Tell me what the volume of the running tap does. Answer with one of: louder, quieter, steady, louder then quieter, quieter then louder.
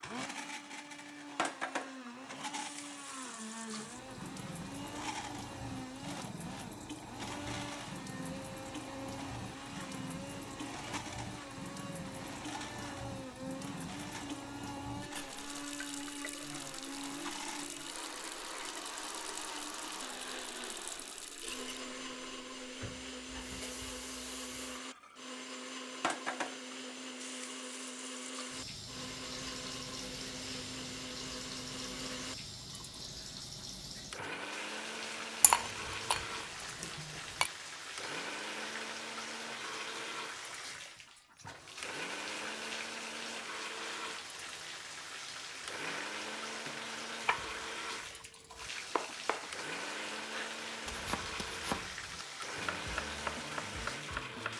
steady.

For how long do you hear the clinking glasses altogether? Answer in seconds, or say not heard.
2 s.